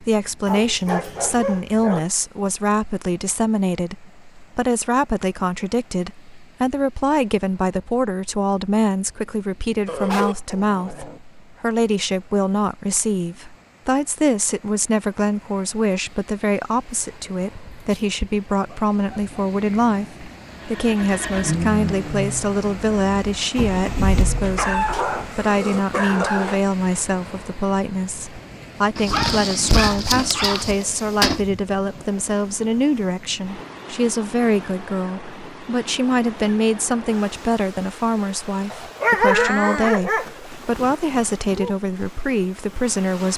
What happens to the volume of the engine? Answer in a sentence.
The loudness of the engine goes down, then up.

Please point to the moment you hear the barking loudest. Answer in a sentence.
The volume of the barking peaks at 39 seconds.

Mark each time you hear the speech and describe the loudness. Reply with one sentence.
You can hear the speech from 0.0 to 43.3 s, at a steady volume.